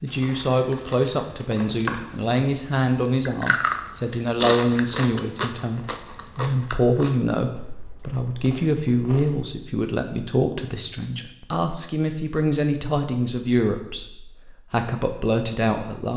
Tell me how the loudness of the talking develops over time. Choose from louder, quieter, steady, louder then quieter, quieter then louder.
steady.